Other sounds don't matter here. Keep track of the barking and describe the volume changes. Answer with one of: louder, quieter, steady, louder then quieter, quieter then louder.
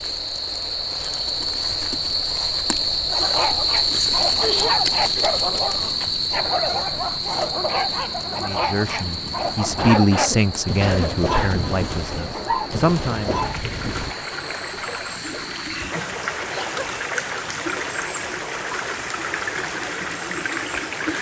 steady.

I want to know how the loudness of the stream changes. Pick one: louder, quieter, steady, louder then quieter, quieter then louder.
louder.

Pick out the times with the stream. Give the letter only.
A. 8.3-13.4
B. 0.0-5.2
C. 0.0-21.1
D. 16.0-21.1
C.